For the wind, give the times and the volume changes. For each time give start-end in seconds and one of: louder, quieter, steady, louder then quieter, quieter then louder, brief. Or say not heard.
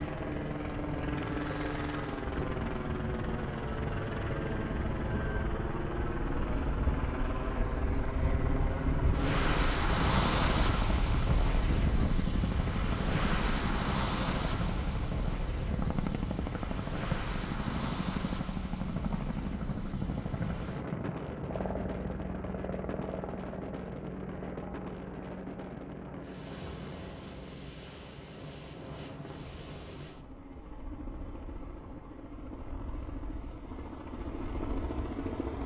0.0-35.6 louder then quieter.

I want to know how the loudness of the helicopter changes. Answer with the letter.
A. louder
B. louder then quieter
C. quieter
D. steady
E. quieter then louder
C.